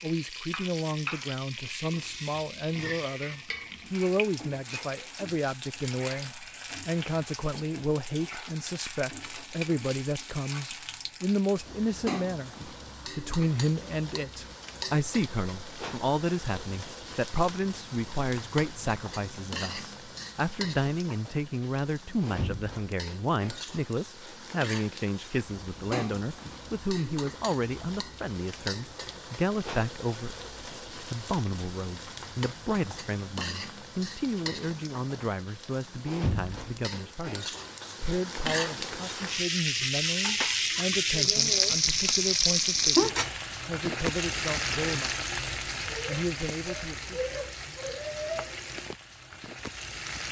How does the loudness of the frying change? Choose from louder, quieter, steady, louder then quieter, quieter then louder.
louder.